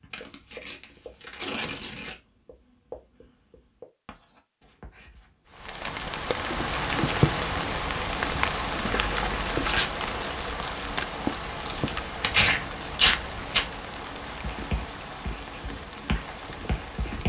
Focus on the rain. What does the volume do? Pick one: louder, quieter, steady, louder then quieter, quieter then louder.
quieter.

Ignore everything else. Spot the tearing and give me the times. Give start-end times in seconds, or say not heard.
0.1-2.1, 8.8-9.8, 11.6-13.6.